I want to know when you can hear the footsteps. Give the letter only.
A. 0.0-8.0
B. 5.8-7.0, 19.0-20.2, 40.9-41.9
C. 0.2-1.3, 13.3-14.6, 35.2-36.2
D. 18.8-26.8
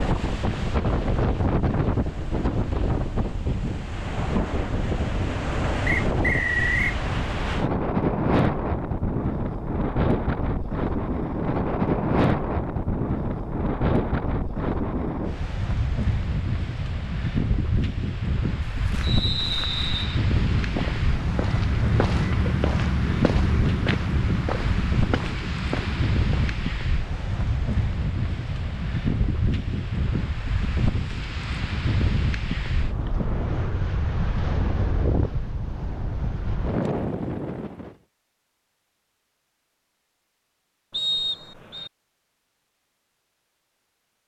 D.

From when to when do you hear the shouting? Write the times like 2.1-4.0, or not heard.
not heard.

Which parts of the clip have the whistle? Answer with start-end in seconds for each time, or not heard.
5.8-7.0, 19.0-20.2, 40.9-41.9.